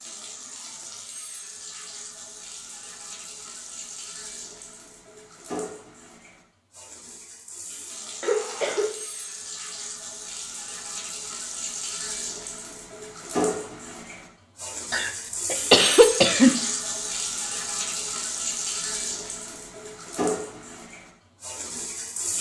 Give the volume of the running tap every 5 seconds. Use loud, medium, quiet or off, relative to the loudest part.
medium, medium, loud, loud, loud.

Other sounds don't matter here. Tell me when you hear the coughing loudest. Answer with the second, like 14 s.
16 s.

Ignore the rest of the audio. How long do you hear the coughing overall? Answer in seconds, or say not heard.
2 s.